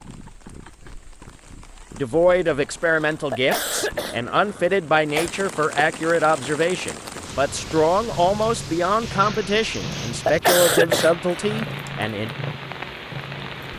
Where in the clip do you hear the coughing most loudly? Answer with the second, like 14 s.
11 s.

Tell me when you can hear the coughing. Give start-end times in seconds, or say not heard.
2.6-5.3, 9.8-11.7.